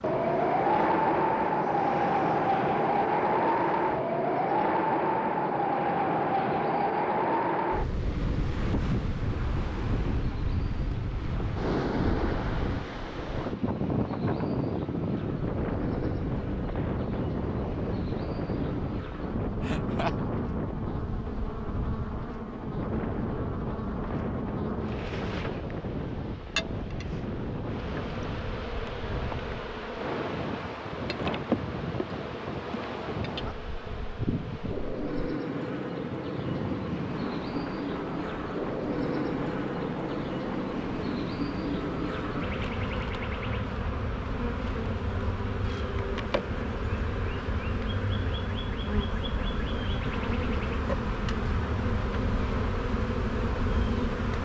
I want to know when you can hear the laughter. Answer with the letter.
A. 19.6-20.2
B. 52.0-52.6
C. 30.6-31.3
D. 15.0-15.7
A.